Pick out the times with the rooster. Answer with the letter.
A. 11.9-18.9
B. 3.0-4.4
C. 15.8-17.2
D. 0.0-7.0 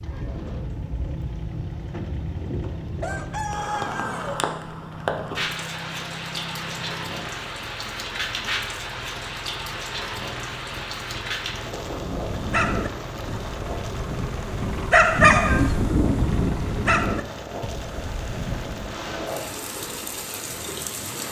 B.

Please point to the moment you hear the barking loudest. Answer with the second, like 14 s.
15 s.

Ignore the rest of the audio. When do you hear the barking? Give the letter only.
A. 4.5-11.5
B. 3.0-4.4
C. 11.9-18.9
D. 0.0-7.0
C.